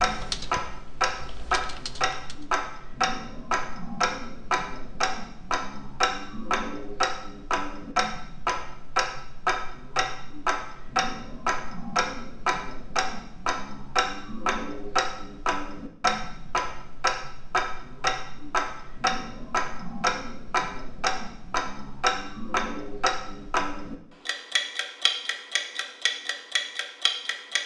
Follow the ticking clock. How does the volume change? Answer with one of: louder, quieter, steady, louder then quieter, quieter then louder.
steady.